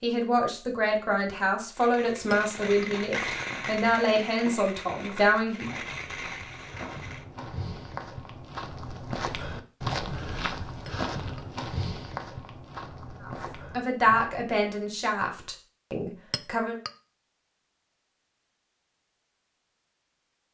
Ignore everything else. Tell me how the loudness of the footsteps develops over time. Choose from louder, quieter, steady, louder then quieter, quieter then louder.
louder then quieter.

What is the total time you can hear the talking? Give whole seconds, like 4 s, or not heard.
9 s.